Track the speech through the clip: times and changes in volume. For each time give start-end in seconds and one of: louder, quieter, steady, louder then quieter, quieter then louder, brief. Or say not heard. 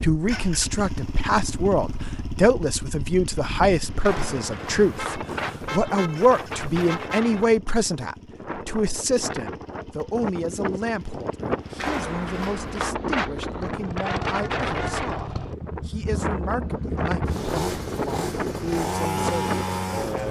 0.0-20.2 quieter.